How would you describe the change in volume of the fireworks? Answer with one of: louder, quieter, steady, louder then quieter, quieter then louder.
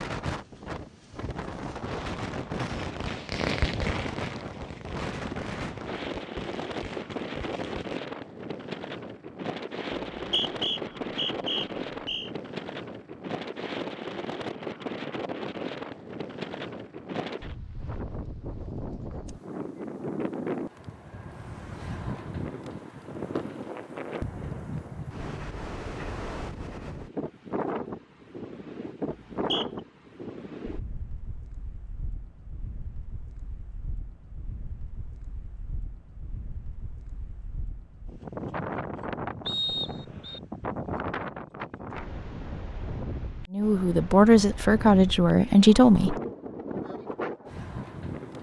louder then quieter.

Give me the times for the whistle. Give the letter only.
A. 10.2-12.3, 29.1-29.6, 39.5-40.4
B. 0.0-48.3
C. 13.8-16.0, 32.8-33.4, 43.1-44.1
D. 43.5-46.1
A.